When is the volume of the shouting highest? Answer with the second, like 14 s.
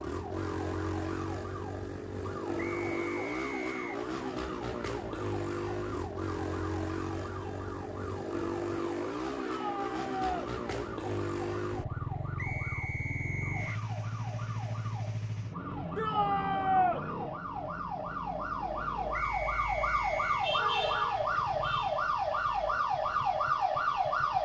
17 s.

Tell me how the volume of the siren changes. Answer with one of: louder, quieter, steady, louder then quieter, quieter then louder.
louder.